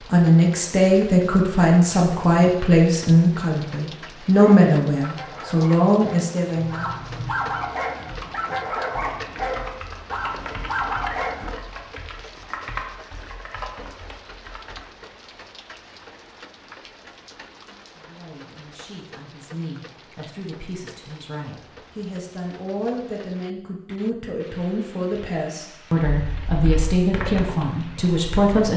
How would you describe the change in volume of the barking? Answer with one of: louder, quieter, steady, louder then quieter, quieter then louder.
louder.